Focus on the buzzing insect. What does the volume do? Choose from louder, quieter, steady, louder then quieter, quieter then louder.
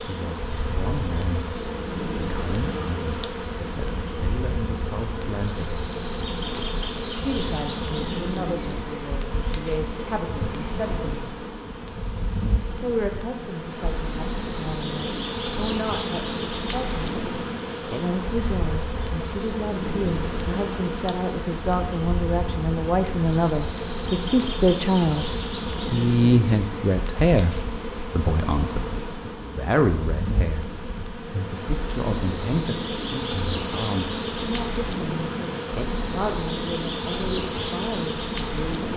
steady.